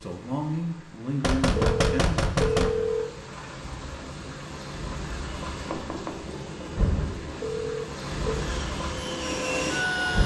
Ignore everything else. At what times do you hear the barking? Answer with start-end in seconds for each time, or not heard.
not heard.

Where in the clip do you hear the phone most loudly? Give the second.
3 s.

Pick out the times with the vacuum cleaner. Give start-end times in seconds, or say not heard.
8.3-10.2.